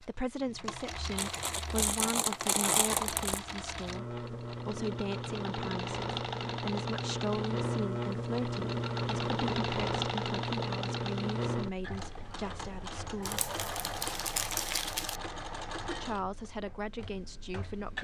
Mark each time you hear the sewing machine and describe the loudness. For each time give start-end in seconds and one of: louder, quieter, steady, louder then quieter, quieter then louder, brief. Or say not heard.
0.0-17.9 louder then quieter.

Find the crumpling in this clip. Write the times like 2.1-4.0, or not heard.
1.1-3.4, 13.2-15.2.